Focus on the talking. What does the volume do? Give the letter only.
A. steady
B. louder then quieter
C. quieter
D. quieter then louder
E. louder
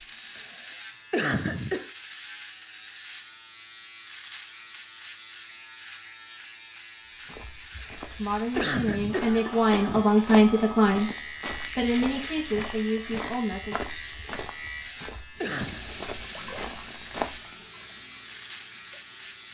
B.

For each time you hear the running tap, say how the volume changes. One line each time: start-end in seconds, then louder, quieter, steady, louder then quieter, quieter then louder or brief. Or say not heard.
15.3-19.4 quieter.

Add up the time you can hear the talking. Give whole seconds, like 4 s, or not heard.
6 s.